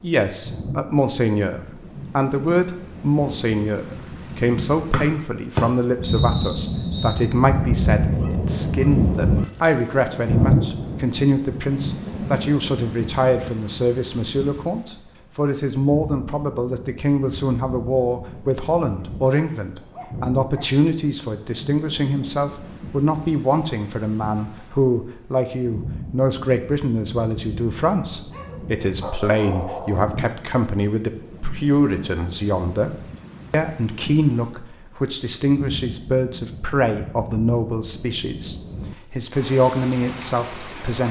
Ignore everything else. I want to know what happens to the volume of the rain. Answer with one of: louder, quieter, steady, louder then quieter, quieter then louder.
quieter.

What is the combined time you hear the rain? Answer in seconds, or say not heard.
41 s.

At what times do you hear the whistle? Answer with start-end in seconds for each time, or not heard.
4.9-7.2.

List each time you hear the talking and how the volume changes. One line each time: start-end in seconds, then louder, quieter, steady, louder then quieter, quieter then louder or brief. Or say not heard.
0.0-41.0 steady.